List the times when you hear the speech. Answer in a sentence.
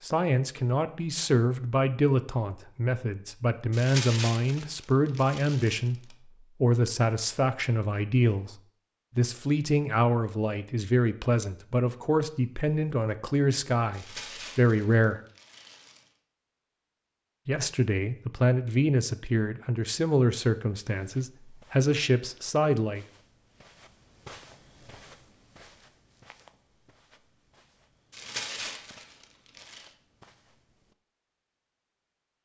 The speech can be heard from 0.0 to 15.2 s and from 17.4 to 23.1 s.